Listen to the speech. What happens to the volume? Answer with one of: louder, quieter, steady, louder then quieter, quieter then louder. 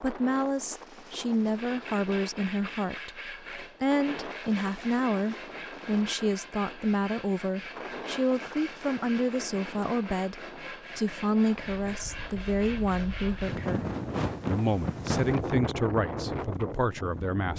steady.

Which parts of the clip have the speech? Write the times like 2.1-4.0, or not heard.
0.0-13.8, 14.4-17.5.